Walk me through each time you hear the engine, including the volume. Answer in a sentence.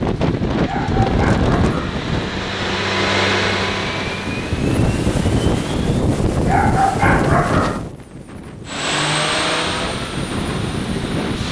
You can hear the engine from 0.0 to 6.0 s, getting louder then quieter; and briefly from 8.7 to 11.4 s.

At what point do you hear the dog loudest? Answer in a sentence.
The volume of the dog peaks at 7 seconds.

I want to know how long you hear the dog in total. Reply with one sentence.
You can hear the dog for 3 seconds altogether.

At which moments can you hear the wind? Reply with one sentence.
You can hear the wind from 0.0 to 11.4 s.